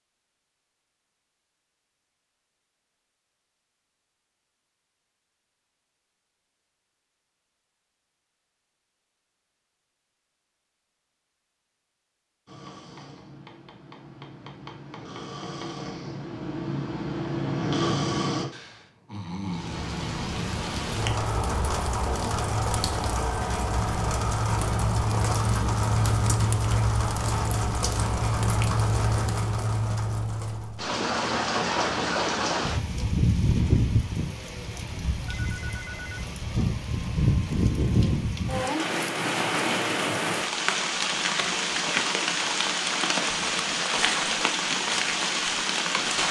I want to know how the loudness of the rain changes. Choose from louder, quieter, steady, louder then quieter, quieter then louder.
steady.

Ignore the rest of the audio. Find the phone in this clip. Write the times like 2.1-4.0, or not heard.
35.4-36.2.